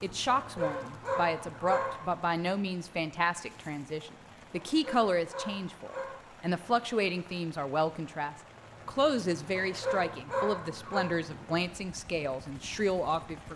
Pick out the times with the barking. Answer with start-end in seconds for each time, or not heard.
0.3-2.2, 4.5-6.2, 9.6-11.1.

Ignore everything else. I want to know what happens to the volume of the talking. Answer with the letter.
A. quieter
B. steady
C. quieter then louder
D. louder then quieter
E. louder
B.